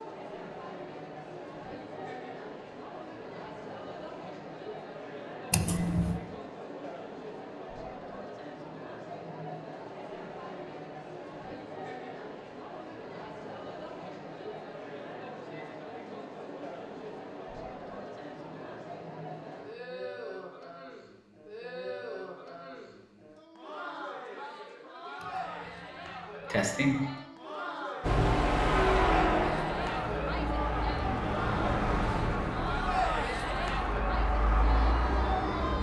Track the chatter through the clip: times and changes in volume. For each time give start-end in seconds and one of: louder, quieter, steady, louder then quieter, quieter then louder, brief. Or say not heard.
0.0-35.7 louder.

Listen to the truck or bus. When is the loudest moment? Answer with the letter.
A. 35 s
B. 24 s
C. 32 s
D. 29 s
D.